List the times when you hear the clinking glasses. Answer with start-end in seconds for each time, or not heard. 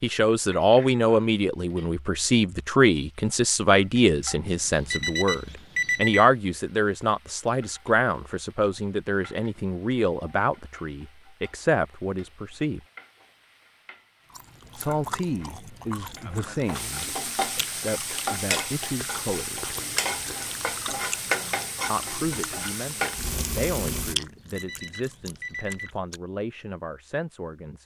not heard.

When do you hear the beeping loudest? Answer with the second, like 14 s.
6 s.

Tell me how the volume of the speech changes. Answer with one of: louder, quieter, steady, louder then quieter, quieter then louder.
quieter.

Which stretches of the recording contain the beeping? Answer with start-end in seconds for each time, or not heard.
4.5-6.2, 24.1-25.9.